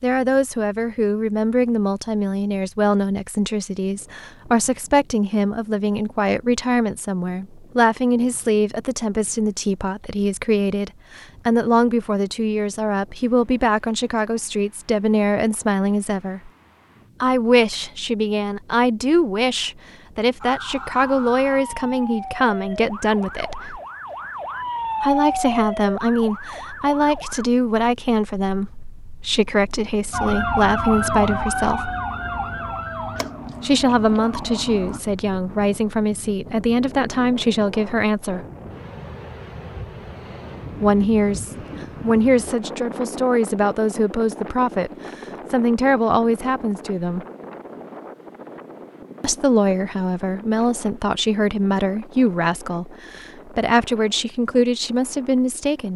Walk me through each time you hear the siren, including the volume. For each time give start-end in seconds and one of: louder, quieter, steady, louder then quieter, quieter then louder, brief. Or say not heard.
20.4-27.5 louder then quieter
30.1-35.0 quieter.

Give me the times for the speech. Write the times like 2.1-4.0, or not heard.
0.0-16.5, 17.2-23.8, 25.0-31.9, 33.6-38.5, 40.8-47.2, 49.2-55.9.